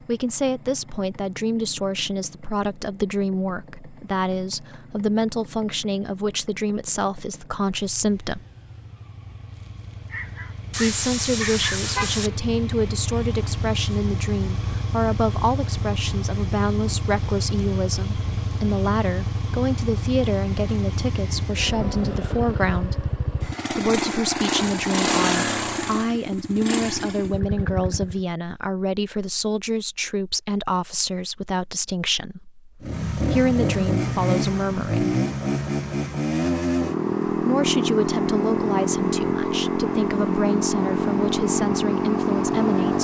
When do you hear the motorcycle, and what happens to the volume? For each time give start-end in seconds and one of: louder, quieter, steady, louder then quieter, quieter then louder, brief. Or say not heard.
0.0-28.2 louder
32.8-42.9 steady.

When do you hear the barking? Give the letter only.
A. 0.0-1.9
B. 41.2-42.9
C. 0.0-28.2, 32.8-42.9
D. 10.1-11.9
D.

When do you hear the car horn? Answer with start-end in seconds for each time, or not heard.
10.7-12.4.